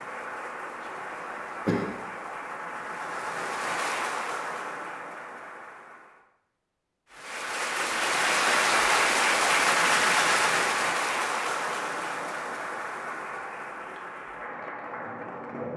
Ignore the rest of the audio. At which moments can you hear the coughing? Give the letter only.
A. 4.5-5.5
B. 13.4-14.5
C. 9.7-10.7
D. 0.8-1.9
D.